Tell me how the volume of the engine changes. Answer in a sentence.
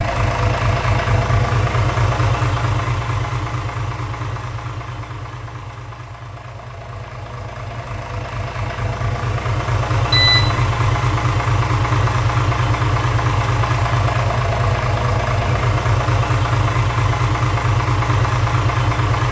The volume of the engine goes down, then up.